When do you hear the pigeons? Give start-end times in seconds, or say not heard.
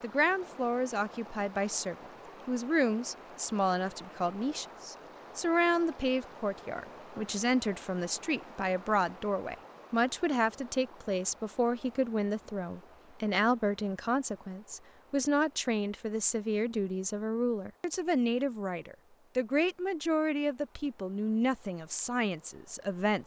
not heard.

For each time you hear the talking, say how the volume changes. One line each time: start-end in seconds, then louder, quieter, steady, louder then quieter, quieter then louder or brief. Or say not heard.
0.0-23.2 steady.